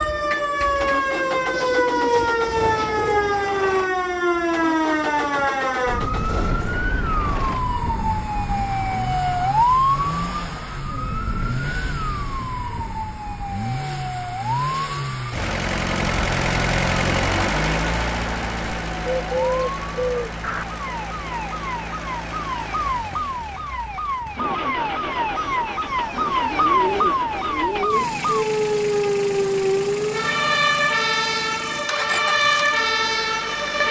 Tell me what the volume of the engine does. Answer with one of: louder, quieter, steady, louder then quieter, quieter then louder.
louder then quieter.